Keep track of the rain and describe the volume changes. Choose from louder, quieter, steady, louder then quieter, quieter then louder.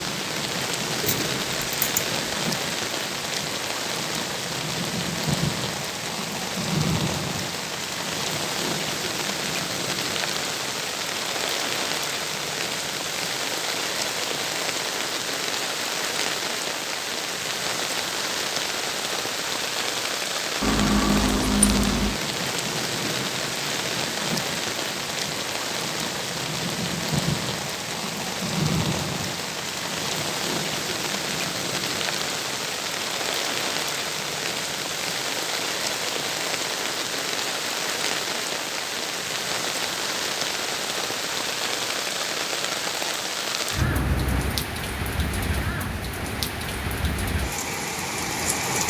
steady.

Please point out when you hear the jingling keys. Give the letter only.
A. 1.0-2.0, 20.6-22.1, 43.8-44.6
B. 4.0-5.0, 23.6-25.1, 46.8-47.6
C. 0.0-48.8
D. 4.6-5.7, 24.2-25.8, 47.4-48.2
A.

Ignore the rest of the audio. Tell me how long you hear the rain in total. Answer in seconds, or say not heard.
49 s.